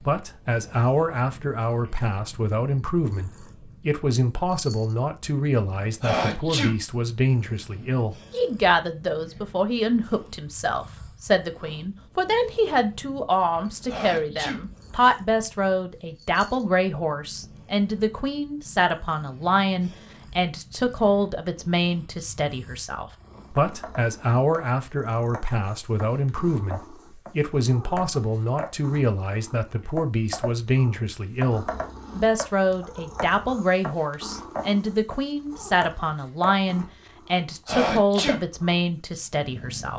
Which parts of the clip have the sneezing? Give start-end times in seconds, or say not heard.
6.0-6.8, 13.8-14.6, 37.6-38.4.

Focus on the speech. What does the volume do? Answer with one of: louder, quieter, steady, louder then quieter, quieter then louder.
steady.